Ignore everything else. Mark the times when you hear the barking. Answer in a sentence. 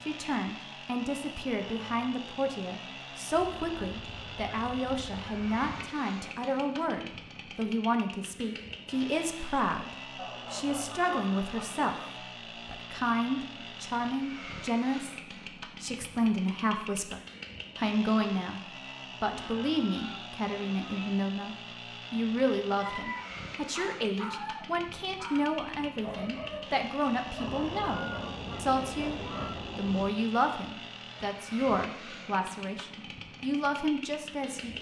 The barking can be heard from 22.8 to 29.6 s.